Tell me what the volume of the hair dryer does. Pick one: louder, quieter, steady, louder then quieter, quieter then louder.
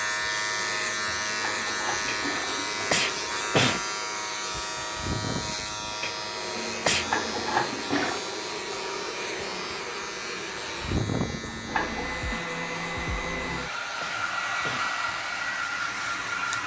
louder.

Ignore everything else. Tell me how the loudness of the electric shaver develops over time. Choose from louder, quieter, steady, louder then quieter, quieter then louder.
quieter.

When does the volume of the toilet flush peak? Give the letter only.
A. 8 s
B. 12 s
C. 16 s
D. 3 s
A.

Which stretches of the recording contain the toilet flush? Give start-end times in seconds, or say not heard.
0.8-3.5, 6.5-8.2, 11.2-12.2.